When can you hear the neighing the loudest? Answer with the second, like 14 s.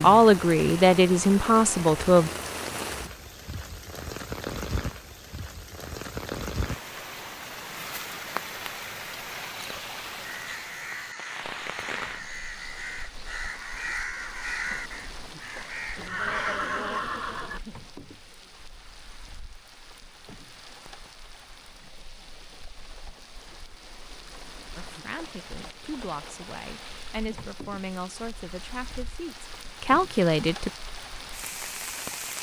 16 s.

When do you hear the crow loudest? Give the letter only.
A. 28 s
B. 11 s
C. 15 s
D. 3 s
C.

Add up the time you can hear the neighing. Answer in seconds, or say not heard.
2 s.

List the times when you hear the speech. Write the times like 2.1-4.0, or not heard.
0.0-2.3, 24.8-30.7.